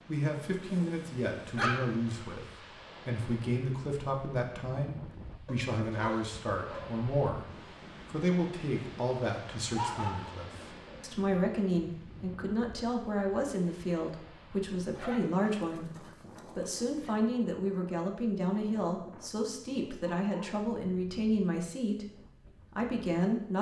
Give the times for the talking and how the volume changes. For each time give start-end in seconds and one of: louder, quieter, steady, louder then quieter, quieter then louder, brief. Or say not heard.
0.1-23.5 steady.